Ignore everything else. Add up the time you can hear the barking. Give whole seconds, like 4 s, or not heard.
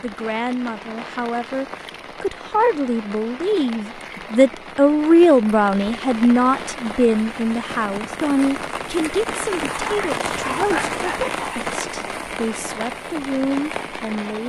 2 s.